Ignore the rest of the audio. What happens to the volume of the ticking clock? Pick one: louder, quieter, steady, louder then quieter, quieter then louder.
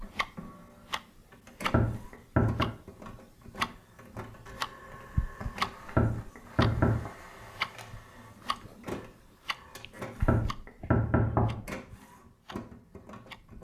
quieter.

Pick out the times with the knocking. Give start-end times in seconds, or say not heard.
1.6-2.7, 5.8-7.1, 10.2-11.7.